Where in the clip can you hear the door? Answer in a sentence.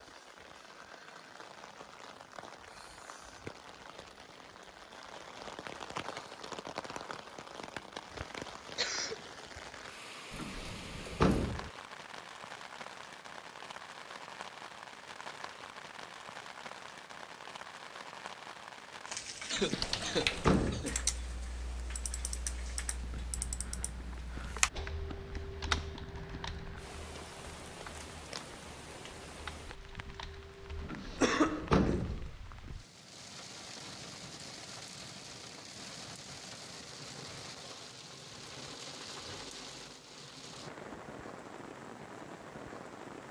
You can hear the door from 10.3 to 11.7 s, from 19.6 to 20.9 s and from 30.8 to 32.2 s.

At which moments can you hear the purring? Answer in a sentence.
The purring can't be heard in this clip.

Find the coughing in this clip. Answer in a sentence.
The coughing can be heard from 8.2 to 9.6 s, from 19.4 to 20.9 s and from 31.1 to 32.3 s.